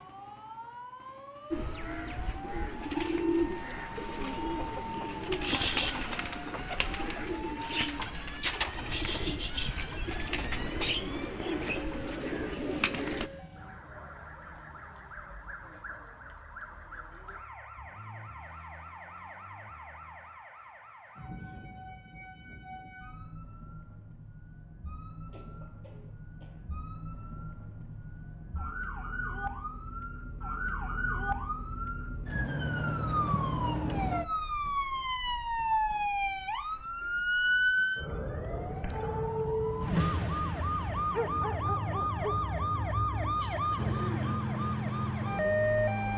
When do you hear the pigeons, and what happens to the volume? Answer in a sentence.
You can hear the pigeons from 1.5 to 13.3 s, at a steady volume.